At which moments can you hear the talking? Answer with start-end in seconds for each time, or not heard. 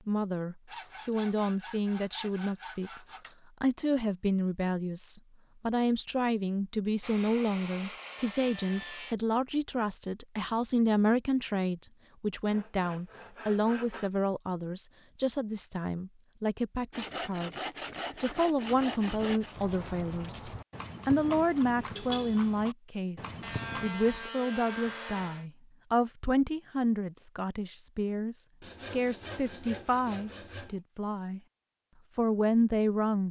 0.1-3.0, 3.6-31.4, 32.1-33.2.